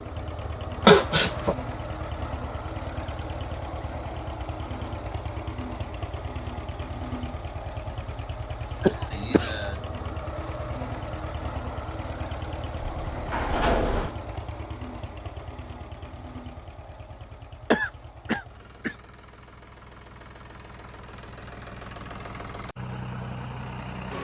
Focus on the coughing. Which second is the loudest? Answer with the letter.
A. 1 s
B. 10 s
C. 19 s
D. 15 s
A.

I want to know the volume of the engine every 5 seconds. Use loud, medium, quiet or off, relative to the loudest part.
loud, loud, loud, medium, loud.